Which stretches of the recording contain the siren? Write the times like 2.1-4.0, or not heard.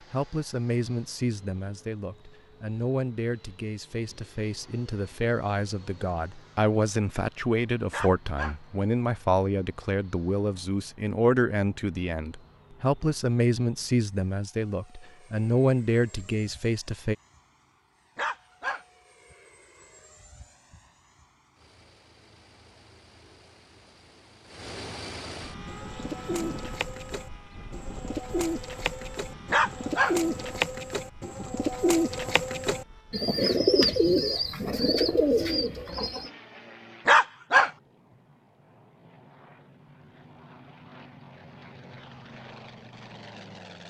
not heard.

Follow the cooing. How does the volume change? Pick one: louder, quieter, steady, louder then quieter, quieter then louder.
louder.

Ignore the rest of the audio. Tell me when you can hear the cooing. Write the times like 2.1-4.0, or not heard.
25.6-36.3.